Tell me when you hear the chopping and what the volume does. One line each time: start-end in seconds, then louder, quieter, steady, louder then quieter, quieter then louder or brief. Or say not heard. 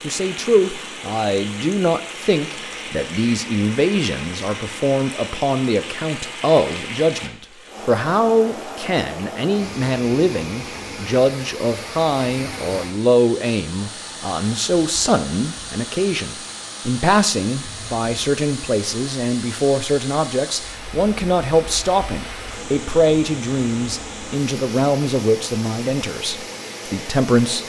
not heard.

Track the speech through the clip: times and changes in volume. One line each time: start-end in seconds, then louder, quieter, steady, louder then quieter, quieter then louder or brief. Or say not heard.
0.0-27.6 steady.